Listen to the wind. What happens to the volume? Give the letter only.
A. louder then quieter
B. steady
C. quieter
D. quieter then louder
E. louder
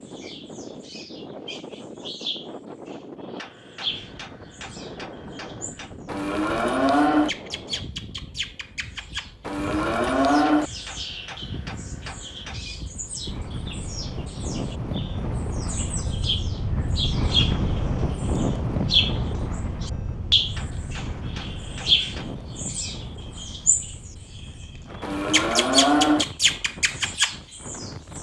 A.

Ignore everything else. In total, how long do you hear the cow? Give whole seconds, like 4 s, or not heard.
4 s.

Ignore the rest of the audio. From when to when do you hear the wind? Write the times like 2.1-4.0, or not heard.
0.0-28.1.